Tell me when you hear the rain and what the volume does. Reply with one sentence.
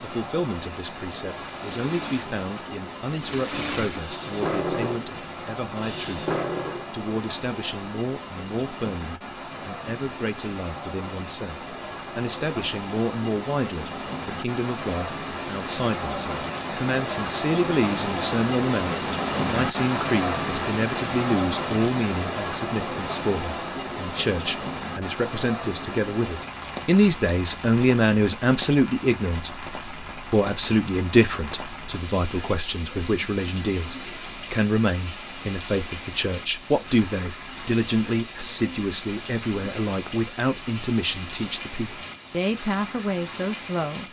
The rain can be heard from 0.0 to 44.0 s, getting louder then quieter.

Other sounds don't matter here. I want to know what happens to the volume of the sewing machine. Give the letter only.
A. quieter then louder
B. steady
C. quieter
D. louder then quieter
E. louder
E.